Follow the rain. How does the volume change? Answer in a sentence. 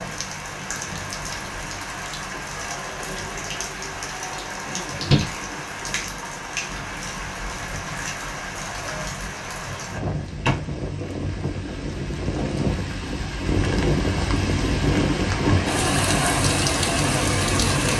The volume of the rain goes up.